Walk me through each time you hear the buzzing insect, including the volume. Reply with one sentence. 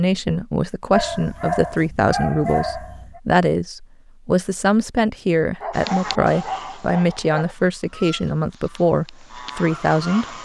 You can't hear the buzzing insect here.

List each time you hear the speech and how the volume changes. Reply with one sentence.
You can hear the speech from 0.0 to 10.3 s, at a steady volume.